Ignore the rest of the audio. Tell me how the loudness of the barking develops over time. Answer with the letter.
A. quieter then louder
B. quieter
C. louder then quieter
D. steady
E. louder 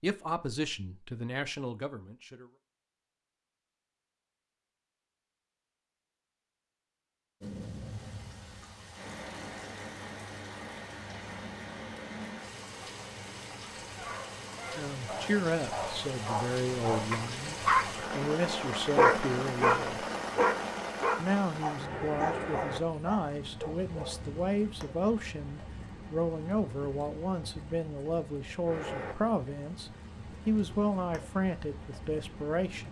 C.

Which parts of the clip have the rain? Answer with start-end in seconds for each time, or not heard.
7.4-32.8.